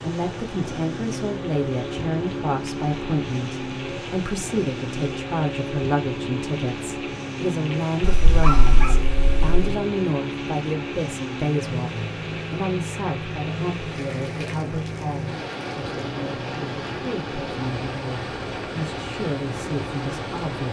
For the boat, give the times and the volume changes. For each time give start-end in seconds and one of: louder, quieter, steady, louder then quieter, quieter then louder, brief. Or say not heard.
0.0-20.6 steady.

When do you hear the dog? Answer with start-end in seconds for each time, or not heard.
8.0-9.6.